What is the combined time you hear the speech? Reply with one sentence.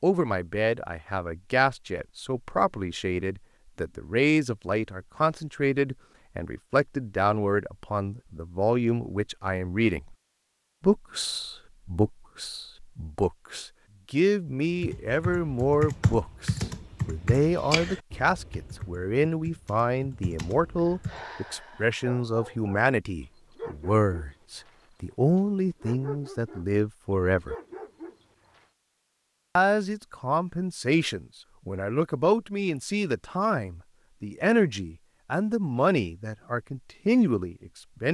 You can hear the speech for 35 seconds altogether.